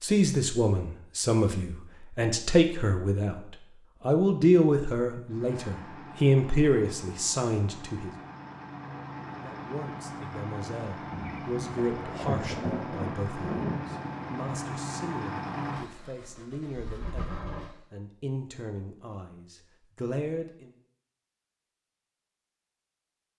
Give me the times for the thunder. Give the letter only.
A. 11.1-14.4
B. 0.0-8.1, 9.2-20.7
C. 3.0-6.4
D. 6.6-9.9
A.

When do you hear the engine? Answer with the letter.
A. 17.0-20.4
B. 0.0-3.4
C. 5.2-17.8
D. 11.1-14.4
C.